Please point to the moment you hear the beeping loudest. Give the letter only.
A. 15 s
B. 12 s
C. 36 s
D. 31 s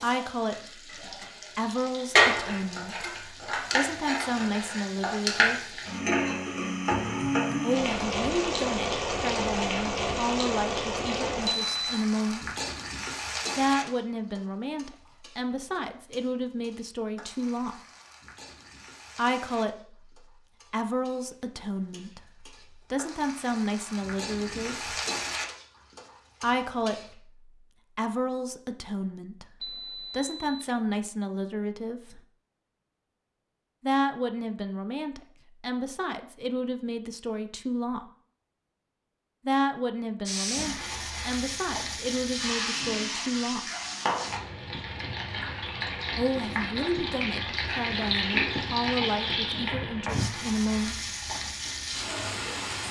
B.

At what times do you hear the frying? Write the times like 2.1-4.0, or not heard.
0.0-27.1, 40.2-52.8.